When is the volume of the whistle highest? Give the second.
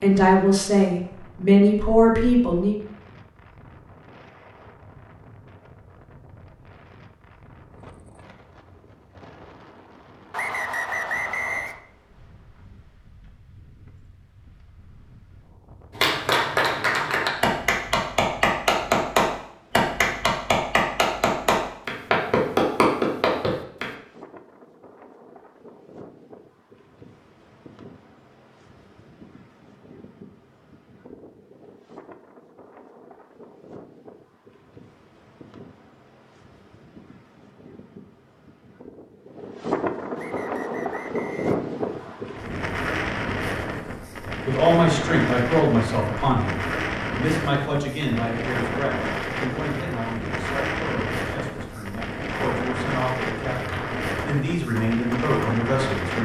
11 s.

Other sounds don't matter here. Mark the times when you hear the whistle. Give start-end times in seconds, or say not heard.
10.3-11.8, 40.1-42.1.